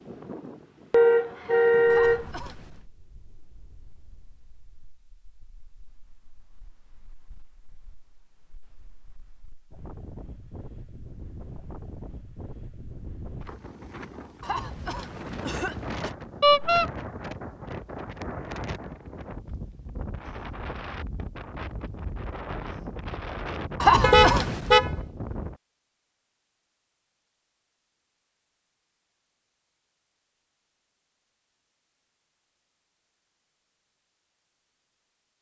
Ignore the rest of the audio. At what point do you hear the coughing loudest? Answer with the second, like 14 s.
24 s.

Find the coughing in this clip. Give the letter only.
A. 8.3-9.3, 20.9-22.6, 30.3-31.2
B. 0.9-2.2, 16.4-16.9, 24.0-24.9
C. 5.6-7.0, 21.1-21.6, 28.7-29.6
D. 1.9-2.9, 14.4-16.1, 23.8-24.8
D.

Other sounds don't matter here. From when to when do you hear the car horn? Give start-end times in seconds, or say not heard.
0.9-2.2, 16.4-16.9, 24.0-24.9.